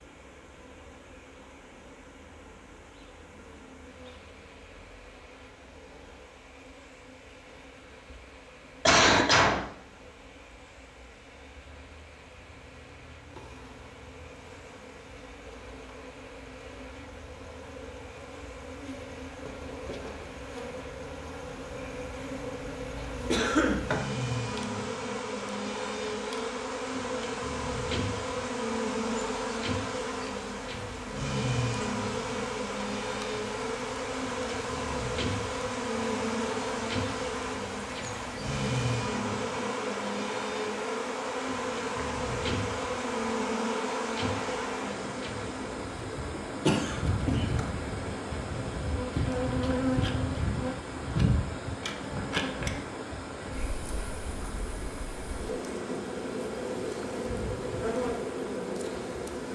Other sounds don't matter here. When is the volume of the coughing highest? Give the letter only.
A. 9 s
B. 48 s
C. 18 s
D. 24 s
A.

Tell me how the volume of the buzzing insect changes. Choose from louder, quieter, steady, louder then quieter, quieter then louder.
louder.